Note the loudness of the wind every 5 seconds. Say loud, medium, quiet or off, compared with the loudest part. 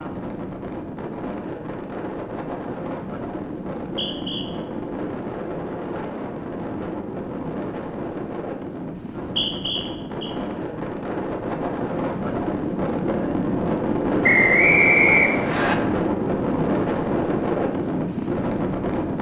medium, medium, loud, loud.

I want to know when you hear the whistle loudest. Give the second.
15 s.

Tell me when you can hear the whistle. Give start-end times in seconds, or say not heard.
3.8-4.5, 9.2-10.3, 14.2-15.8.